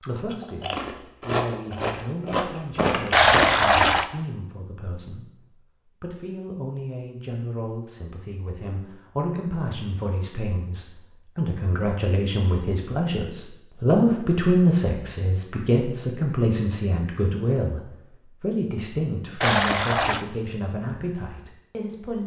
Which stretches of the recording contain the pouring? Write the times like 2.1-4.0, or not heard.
3.1-4.0, 19.4-20.2.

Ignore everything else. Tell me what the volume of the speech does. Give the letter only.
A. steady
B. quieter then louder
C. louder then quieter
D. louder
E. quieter
C.